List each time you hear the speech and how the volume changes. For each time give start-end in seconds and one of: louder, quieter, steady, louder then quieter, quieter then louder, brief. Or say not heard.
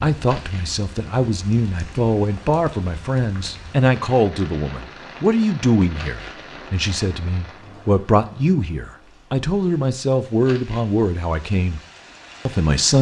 0.0-11.8 steady
12.4-12.9 brief.